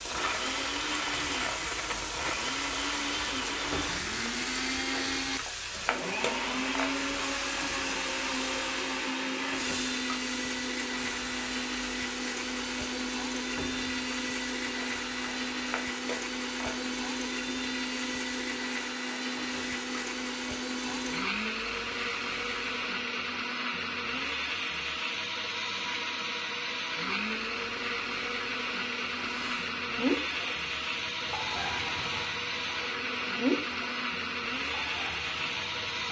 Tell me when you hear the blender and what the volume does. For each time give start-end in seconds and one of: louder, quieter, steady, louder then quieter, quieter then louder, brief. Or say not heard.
0.0-36.0 steady.